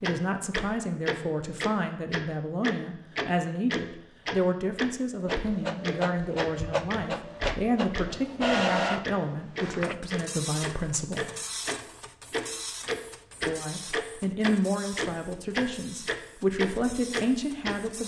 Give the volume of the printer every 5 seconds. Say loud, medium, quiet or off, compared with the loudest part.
off, loud, medium, quiet.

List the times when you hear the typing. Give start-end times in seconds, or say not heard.
not heard.